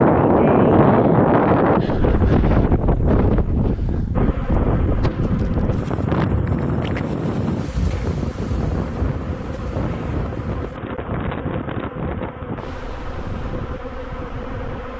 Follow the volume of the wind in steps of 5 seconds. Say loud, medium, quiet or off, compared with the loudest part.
loud, medium, quiet.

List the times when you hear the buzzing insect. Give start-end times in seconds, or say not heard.
4.1-14.9.